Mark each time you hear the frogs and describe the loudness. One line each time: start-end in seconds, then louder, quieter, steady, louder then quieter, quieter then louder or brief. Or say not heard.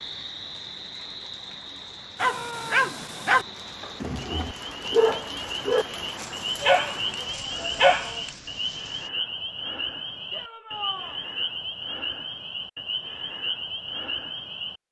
0.0-14.8 louder.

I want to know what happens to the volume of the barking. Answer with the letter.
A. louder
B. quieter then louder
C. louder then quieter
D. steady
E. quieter
B.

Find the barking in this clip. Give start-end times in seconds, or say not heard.
2.2-8.3.